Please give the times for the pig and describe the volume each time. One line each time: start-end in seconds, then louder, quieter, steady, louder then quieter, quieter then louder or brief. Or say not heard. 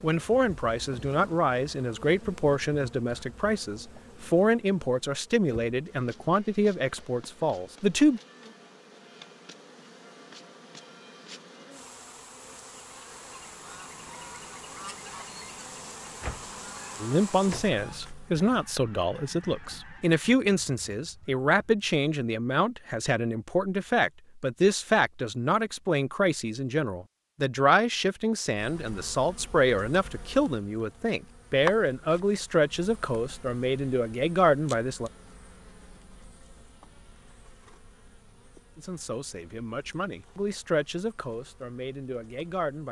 not heard.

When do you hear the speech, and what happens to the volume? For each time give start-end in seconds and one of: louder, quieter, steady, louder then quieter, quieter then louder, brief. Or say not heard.
0.0-8.2 steady
17.0-35.1 steady
38.8-42.8 louder then quieter.